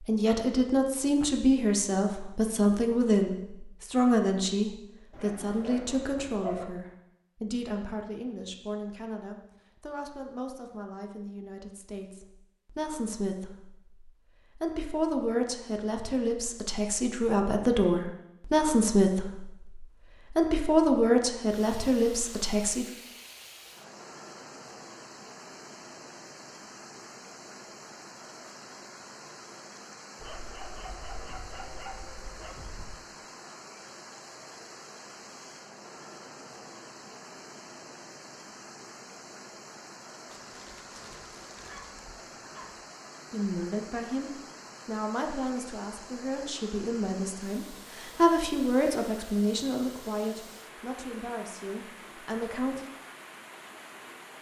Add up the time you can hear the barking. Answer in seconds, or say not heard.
7 s.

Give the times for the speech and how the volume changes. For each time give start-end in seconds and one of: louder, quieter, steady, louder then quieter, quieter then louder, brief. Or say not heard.
0.1-22.9 quieter then louder
43.3-52.9 louder then quieter.